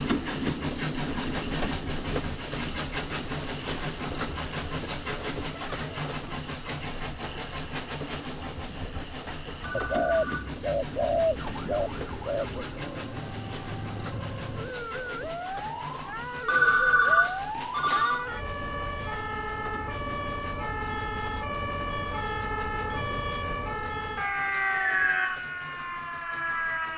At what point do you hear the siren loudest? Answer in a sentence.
The volume of the siren peaks at 25 seconds.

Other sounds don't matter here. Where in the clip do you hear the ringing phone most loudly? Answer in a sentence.
The volume of the ringing phone peaks at 17 seconds.